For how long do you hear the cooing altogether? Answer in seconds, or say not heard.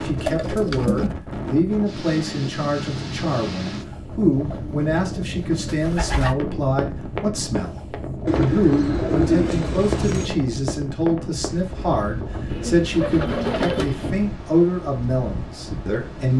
7 s.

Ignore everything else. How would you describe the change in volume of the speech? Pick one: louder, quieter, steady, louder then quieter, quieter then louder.
steady.